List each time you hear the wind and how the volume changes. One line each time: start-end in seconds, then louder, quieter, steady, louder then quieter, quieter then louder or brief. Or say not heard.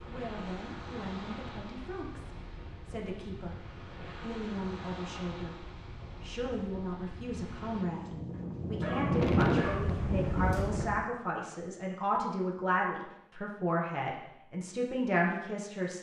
0.0-11.1 louder.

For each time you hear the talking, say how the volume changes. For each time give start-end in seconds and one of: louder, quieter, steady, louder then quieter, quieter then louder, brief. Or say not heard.
0.1-15.9 louder.